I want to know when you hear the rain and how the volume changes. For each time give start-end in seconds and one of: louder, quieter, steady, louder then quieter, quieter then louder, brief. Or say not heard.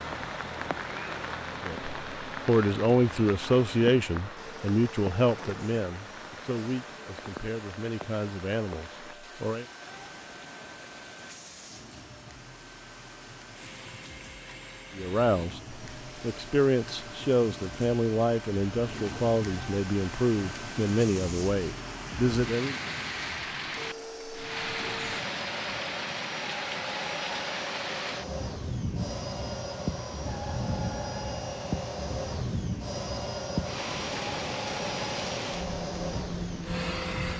0.0-37.3 quieter then louder.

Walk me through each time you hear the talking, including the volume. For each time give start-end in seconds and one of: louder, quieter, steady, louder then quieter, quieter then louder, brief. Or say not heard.
1.6-9.7 quieter
14.9-22.8 steady.